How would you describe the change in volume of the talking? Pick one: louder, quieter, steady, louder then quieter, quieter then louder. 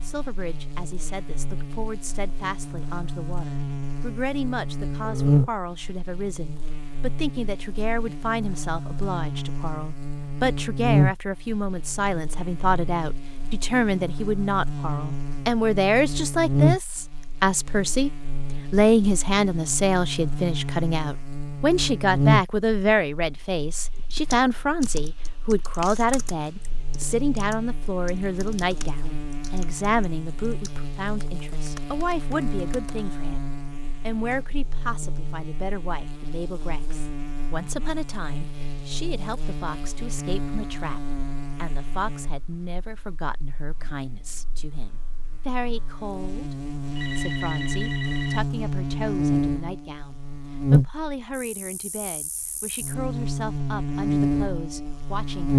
louder then quieter.